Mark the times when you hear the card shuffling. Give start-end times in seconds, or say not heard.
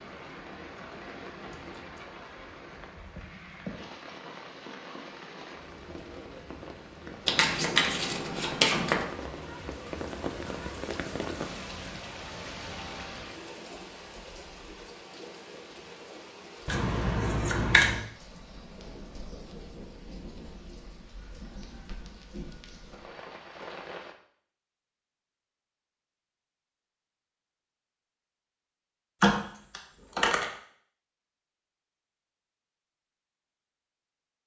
7.2-9.1, 16.6-18.0, 29.2-30.4.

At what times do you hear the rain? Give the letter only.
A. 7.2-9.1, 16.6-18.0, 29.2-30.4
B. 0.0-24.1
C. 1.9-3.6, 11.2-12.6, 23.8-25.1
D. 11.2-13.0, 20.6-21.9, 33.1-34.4
B.